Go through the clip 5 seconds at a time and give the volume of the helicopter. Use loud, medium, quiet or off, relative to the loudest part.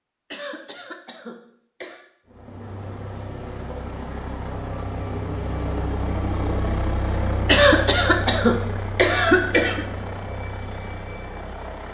medium, loud, medium.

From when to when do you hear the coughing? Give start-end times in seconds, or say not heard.
0.3-2.0, 7.5-9.8.